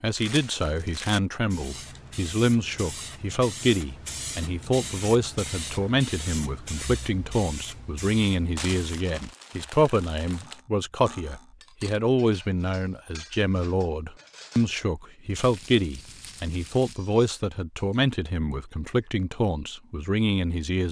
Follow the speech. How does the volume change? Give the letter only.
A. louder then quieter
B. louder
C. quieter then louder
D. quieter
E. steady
E.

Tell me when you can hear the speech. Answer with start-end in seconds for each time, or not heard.
0.0-20.8.